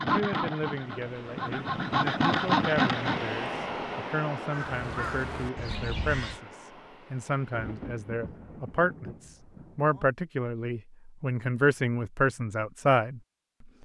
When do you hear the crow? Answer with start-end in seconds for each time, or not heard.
4.5-6.4.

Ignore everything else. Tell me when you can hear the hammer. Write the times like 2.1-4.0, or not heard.
not heard.